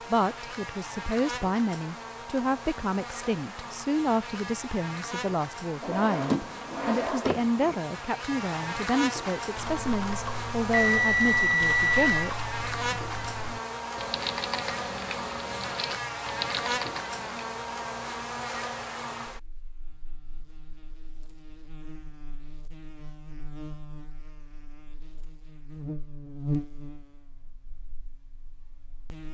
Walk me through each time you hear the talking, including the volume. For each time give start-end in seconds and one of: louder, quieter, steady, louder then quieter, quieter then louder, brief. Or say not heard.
0.1-12.4 steady.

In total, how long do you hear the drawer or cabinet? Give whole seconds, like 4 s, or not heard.
2 s.